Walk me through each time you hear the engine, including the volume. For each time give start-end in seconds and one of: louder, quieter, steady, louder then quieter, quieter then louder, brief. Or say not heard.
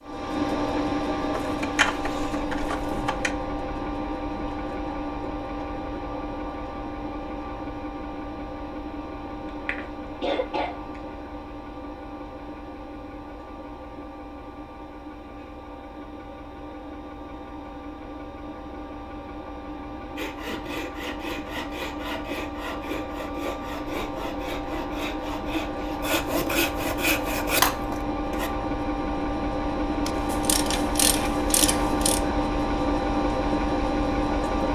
0.0-34.7 quieter then louder.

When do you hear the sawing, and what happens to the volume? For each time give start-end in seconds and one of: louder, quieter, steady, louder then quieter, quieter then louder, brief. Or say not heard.
20.1-28.5 louder.